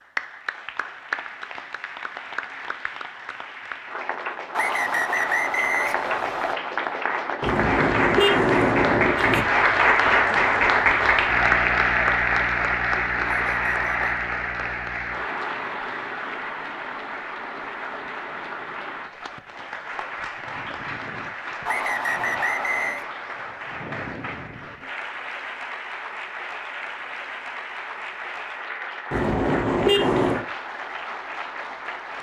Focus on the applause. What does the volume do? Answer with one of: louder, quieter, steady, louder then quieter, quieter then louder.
louder then quieter.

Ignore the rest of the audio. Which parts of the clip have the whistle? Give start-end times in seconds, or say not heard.
4.5-6.5, 13.2-14.2, 21.6-23.1.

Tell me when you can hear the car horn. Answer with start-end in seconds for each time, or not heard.
7.4-9.4, 29.1-30.4.